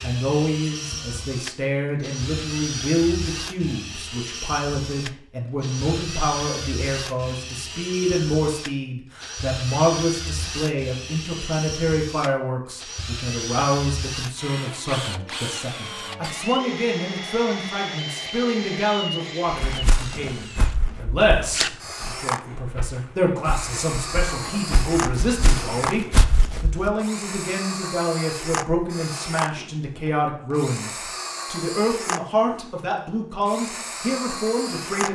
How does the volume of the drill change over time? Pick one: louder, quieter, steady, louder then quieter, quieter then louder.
steady.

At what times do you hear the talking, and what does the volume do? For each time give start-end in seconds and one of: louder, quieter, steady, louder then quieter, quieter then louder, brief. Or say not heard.
0.0-35.1 steady.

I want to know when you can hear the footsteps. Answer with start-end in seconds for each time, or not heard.
19.5-26.9.